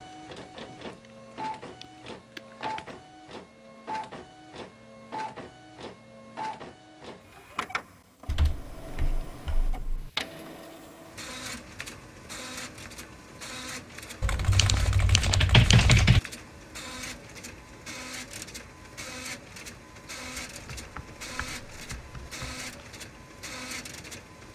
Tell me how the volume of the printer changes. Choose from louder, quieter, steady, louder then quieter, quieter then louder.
steady.